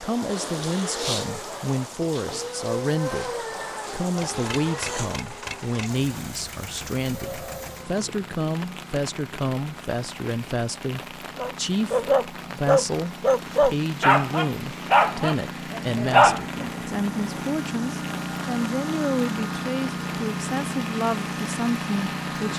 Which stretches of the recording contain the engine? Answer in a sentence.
You can hear the engine from 4.2 to 22.5 s.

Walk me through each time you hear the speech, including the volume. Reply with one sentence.
You can hear the speech from 0.0 to 22.5 s, at a steady volume.